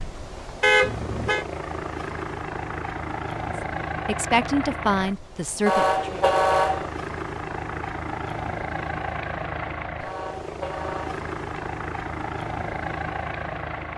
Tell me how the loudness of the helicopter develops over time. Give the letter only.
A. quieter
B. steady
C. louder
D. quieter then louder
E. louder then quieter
B.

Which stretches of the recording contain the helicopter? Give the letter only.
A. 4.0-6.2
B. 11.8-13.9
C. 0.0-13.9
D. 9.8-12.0
C.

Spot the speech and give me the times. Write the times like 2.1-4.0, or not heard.
4.0-6.2.